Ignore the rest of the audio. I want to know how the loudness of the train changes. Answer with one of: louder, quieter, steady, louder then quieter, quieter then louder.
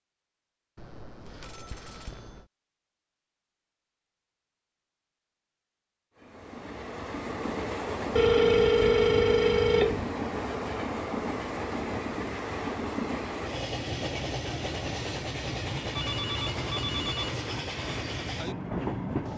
steady.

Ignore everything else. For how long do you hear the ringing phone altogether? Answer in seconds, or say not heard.
5 s.